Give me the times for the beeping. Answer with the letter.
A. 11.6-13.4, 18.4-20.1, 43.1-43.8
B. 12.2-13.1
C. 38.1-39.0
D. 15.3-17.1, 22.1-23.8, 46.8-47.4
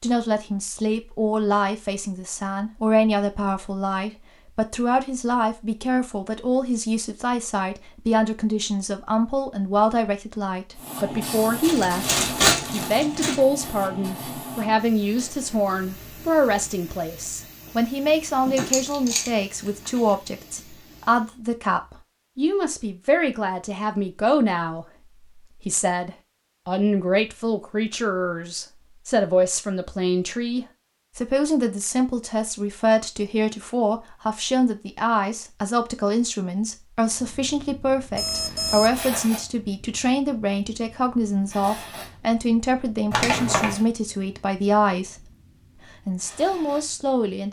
C.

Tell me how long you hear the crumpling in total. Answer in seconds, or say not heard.
4 s.